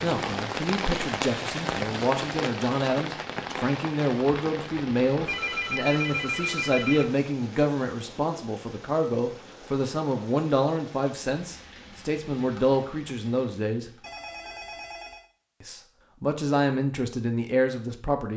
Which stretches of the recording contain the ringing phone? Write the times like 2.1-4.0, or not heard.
5.2-7.2, 14.0-15.2.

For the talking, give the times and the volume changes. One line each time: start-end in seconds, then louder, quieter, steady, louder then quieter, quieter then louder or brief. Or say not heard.
0.0-13.9 steady
15.6-18.3 brief.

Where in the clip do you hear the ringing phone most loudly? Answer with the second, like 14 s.
6 s.